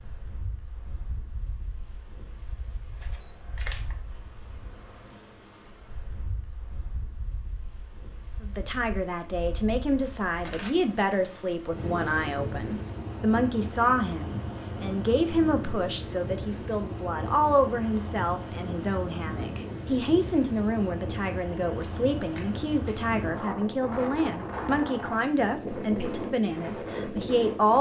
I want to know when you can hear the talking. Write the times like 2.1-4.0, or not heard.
8.4-27.7.